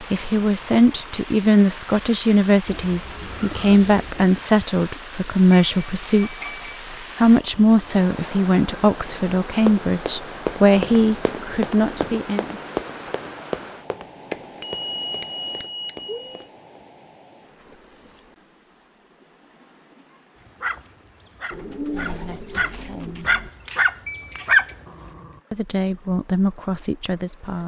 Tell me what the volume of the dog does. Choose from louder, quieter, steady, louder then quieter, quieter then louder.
louder.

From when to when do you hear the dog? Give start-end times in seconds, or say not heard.
20.6-25.2.